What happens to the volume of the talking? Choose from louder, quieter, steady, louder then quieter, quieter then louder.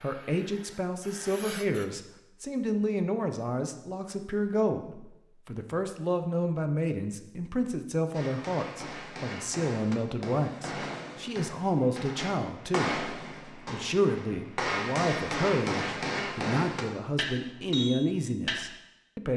steady.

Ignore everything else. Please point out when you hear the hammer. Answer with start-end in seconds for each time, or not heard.
8.1-18.6.